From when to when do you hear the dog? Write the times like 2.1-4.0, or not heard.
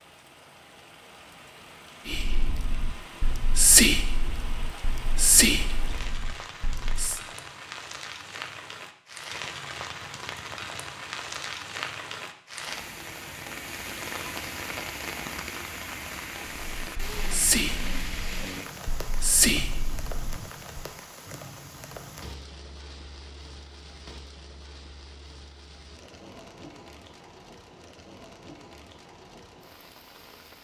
not heard.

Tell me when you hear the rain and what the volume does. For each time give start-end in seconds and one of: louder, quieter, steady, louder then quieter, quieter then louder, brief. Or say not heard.
0.0-30.5 louder then quieter.